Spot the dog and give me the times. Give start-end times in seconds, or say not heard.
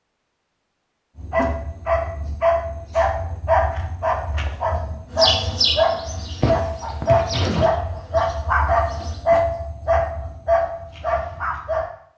1.1-11.8.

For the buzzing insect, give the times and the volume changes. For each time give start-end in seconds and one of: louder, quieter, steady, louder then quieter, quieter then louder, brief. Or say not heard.
5.1-9.2 quieter.